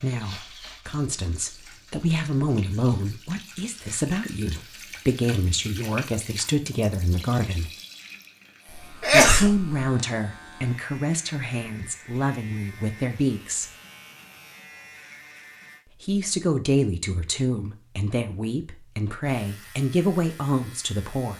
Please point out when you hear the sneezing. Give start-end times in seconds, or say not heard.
8.7-9.8.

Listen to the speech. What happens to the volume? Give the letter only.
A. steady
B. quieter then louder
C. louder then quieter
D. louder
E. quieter
A.